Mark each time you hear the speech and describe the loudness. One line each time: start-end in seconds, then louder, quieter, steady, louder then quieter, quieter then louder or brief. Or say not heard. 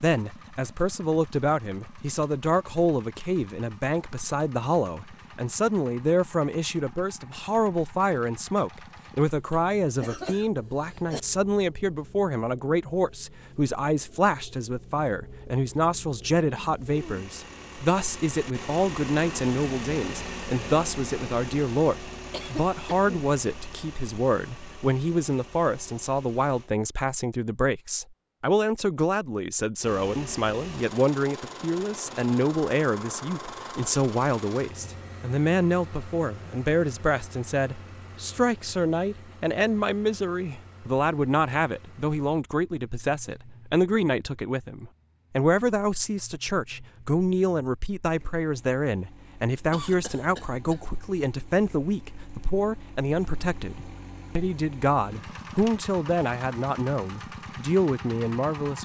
0.0-58.8 steady.